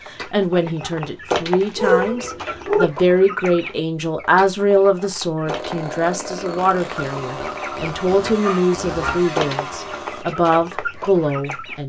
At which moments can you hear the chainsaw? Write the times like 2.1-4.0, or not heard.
5.5-10.2.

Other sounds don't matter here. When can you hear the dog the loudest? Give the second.
2 s.